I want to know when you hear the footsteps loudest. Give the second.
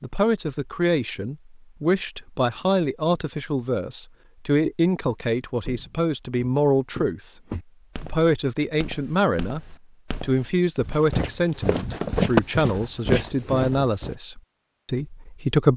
12 s.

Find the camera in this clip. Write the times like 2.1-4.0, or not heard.
not heard.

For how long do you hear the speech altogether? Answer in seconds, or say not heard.
14 s.